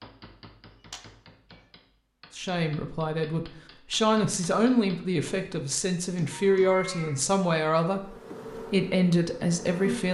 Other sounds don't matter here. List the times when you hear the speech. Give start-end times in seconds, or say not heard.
2.4-10.0.